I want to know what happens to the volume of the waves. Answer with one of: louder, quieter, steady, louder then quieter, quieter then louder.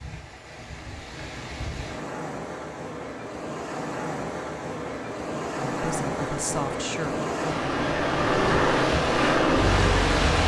louder.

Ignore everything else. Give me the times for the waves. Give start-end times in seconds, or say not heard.
0.0-10.4.